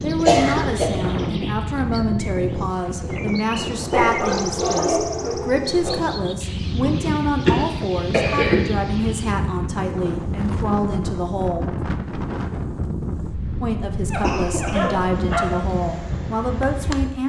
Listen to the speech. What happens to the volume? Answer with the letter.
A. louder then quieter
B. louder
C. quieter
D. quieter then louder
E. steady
E.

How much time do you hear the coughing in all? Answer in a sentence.
The coughing can be heard for 3 seconds in total.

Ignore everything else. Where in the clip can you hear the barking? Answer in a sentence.
You can hear the barking from 3.9 to 6.0 s and from 14.1 to 15.5 s.